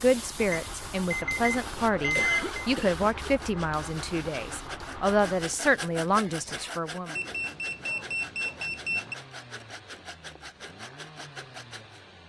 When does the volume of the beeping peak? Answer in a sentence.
The loudest moment of the beeping is at 2 seconds.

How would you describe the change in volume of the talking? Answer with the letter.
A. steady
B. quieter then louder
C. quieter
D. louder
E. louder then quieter
A.